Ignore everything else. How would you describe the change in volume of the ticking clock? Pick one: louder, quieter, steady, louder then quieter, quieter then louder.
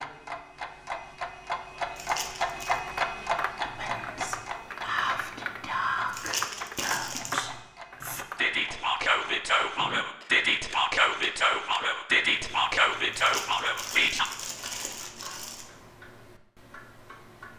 quieter.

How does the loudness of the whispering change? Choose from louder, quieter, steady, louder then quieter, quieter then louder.
louder.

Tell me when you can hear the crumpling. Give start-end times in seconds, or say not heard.
1.9-2.8, 6.1-7.5, 13.1-15.7.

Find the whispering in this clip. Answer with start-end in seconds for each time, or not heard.
3.6-14.2.